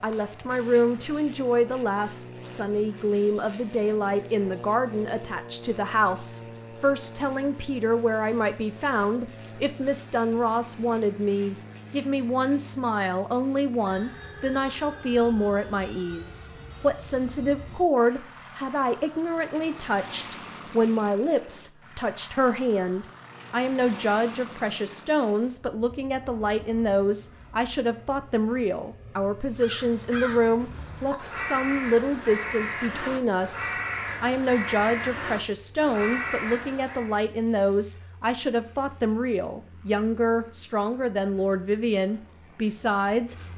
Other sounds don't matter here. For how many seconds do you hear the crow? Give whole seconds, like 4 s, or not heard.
8 s.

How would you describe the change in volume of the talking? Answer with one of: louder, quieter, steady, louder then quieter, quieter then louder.
steady.